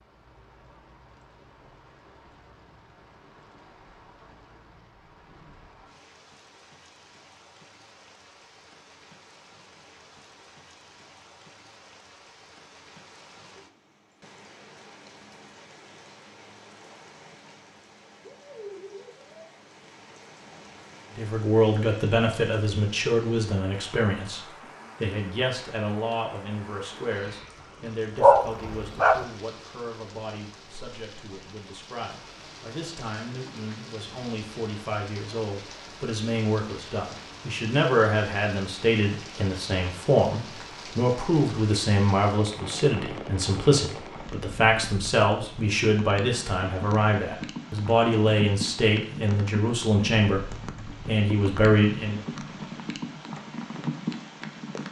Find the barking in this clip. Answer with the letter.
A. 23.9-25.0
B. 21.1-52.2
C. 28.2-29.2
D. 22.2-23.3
C.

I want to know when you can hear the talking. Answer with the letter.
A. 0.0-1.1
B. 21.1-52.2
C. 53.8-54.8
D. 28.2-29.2
B.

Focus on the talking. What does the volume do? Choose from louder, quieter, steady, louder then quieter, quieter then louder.
quieter then louder.